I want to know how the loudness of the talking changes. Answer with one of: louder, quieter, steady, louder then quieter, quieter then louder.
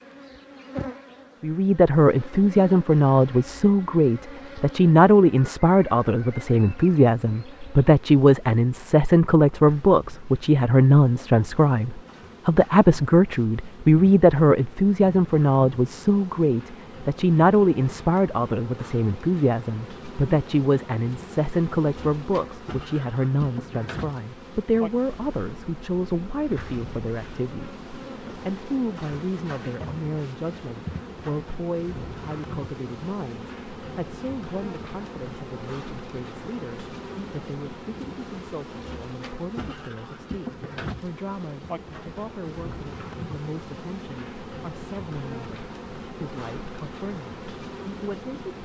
quieter.